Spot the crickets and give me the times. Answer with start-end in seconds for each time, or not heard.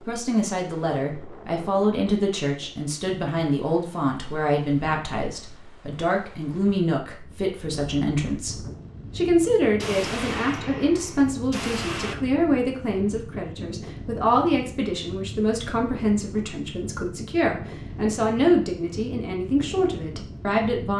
not heard.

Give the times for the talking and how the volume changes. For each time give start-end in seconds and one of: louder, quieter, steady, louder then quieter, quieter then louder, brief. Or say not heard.
0.0-20.9 steady.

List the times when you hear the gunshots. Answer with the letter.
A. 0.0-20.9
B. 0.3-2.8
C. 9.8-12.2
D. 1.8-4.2
C.